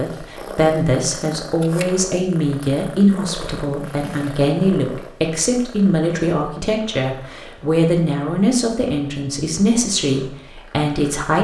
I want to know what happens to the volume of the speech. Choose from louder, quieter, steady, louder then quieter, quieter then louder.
steady.